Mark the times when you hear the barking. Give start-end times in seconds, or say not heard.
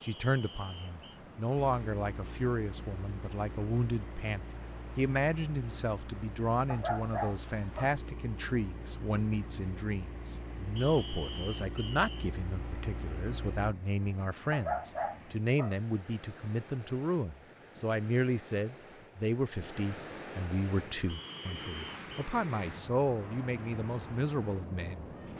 6.7-8.0, 14.5-15.8.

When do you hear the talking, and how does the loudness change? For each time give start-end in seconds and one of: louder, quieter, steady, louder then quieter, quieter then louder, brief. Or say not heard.
0.0-25.1 steady.